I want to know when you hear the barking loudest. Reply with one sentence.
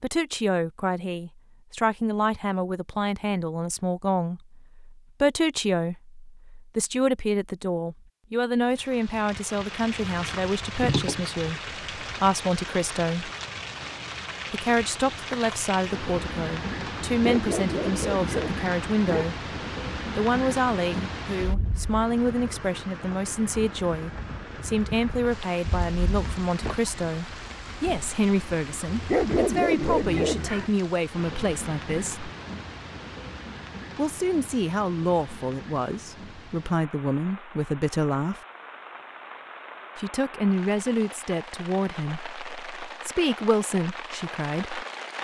The volume of the barking peaks at 29 seconds.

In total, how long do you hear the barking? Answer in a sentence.
You can hear the barking for 4 seconds altogether.